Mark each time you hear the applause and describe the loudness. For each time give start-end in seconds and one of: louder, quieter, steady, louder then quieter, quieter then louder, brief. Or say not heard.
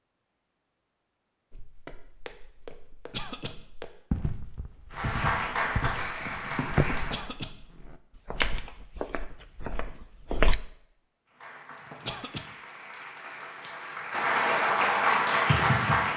4.9-7.2 brief
11.3-16.1 louder.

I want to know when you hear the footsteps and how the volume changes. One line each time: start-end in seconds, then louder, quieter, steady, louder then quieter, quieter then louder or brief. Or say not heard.
1.5-10.6 louder then quieter.